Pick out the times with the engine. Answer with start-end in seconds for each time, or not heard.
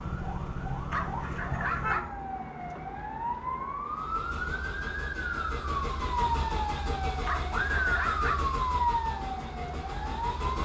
3.9-10.5.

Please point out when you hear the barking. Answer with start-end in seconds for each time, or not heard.
0.9-2.1, 7.2-8.5.